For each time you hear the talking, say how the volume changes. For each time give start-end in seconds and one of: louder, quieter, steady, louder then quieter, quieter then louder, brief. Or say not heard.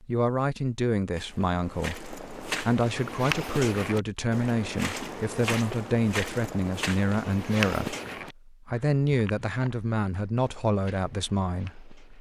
0.0-12.0 steady.